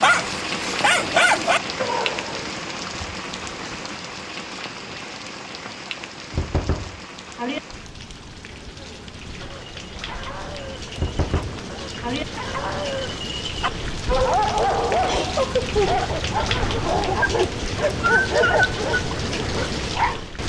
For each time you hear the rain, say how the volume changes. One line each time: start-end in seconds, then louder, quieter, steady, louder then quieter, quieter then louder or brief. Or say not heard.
0.0-20.4 quieter then louder.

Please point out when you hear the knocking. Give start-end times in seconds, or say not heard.
6.3-7.6, 10.9-12.2.